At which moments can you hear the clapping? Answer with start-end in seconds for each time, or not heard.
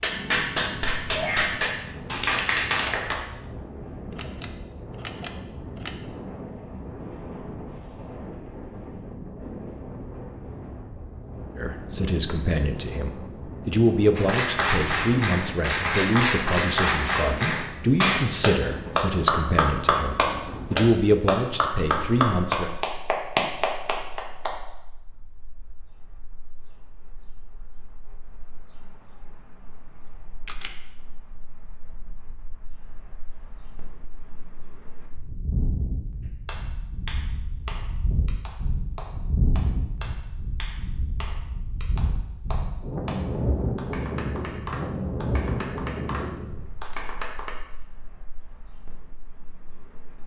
0.0-3.1, 14.2-24.5, 36.5-47.5.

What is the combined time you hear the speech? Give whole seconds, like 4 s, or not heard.
11 s.